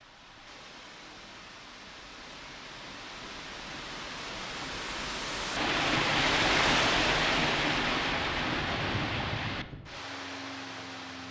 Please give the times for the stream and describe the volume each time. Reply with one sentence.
The stream can be heard from 0.0 to 11.2 s, getting louder then quieter.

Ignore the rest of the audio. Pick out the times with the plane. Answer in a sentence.
You can hear the plane from 8.2 to 11.2 s.